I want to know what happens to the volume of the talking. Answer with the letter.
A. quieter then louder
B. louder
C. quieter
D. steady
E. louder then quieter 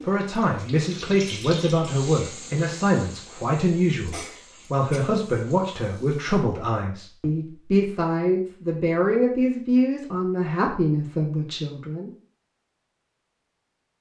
D.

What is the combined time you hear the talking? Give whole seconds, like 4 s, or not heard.
12 s.